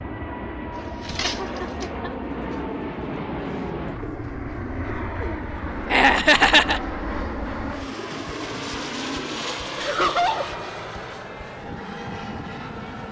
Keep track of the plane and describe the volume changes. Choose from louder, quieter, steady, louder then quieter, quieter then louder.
steady.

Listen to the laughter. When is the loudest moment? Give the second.
6 s.